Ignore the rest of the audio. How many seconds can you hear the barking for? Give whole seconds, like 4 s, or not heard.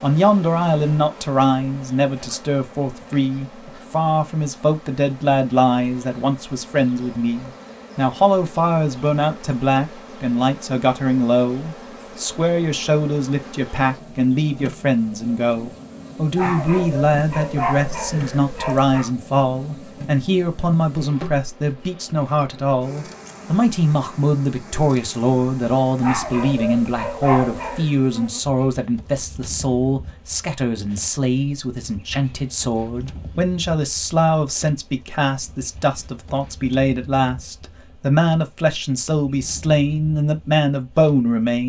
5 s.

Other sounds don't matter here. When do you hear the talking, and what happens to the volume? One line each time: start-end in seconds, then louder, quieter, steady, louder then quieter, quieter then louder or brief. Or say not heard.
0.0-41.6 steady.